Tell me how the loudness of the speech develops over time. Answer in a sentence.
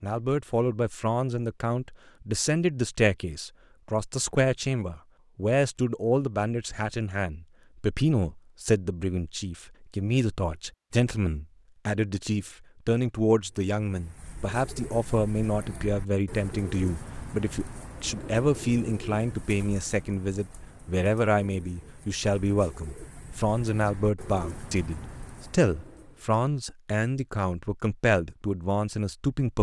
The volume of the speech stays about the same.